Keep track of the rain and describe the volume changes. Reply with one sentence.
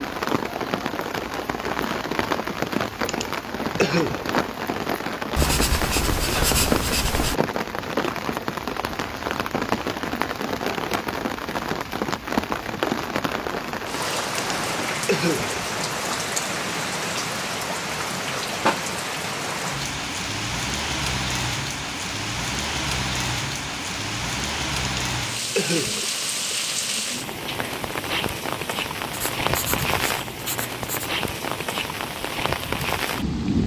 The volume of the rain stays about the same.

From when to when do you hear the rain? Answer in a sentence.
You can hear the rain from 0.0 to 33.6 s.